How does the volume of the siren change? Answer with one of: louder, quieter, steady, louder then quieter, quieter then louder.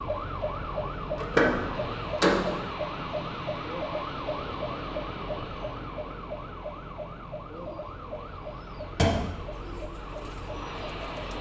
quieter.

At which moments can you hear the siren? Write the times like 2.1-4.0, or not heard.
0.0-11.3.